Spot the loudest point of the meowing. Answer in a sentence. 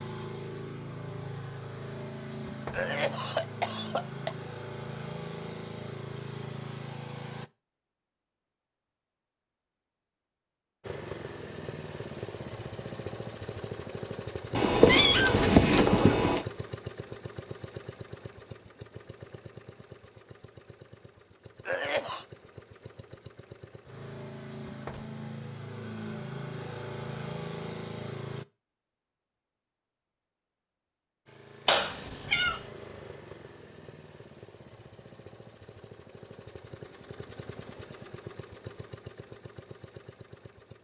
The loudest moment of the meowing is at 15 seconds.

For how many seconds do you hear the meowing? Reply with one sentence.
You can hear the meowing for 3 seconds altogether.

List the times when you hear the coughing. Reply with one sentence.
The coughing can be heard from 2.7 to 4.3 s and from 21.6 to 22.2 s.